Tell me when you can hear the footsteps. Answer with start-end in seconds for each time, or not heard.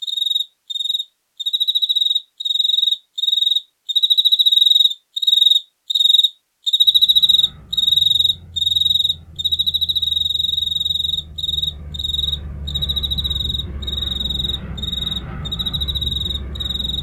not heard.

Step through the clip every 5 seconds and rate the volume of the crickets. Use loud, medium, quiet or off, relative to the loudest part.
loud, loud, medium, medium.